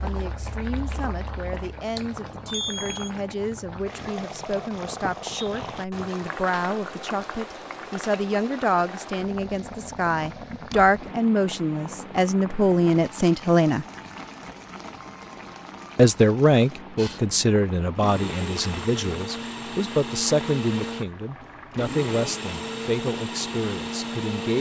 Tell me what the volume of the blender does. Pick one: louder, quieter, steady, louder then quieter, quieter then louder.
steady.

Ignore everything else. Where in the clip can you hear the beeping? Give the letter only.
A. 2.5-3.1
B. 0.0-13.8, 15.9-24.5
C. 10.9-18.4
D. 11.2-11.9
A.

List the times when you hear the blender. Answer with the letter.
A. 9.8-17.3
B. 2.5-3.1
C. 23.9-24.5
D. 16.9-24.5
D.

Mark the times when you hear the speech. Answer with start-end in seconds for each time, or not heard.
0.0-13.8, 15.9-24.5.